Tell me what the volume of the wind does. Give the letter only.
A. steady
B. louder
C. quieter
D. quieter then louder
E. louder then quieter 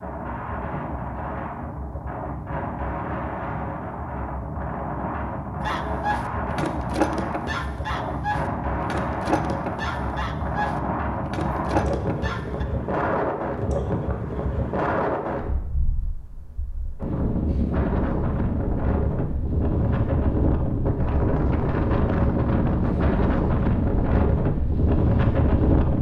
B.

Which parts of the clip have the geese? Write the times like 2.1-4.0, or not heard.
5.7-12.7.